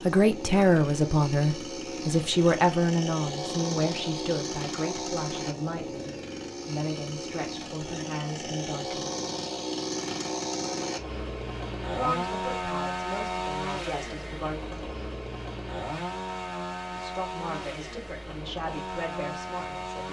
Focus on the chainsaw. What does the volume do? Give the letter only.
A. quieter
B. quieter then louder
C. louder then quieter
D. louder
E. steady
E.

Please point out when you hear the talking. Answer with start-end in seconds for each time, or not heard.
0.0-9.1, 11.9-14.6, 16.9-20.0.